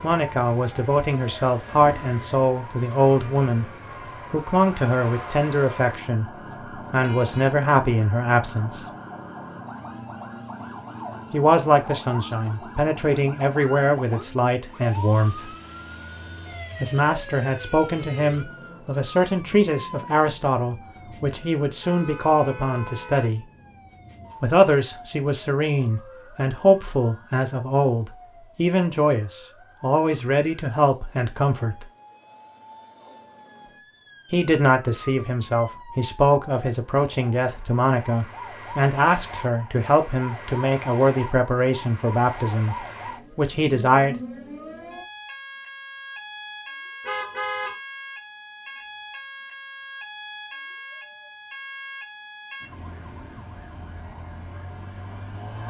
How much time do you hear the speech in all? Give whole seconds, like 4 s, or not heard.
37 s.